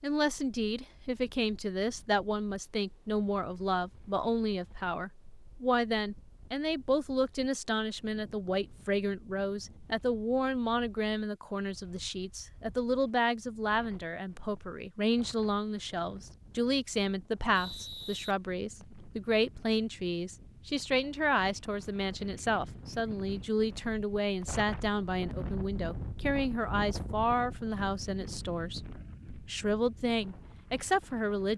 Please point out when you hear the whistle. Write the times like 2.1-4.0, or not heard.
17.6-19.1.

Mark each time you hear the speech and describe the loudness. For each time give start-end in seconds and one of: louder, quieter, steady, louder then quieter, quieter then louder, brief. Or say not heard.
0.0-31.5 steady.